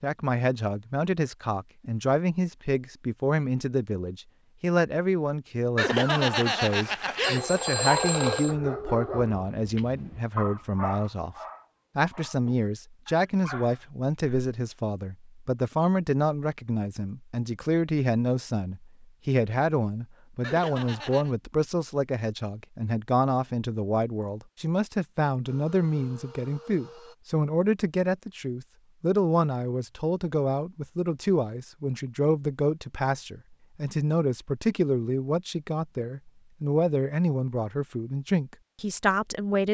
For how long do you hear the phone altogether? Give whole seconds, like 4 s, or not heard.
4 s.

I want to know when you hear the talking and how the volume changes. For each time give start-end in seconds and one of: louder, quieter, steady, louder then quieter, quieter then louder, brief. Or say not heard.
0.0-11.3 steady
11.9-39.6 steady.